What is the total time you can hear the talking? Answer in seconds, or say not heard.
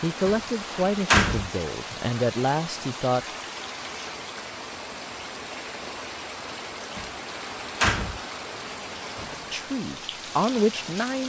5 s.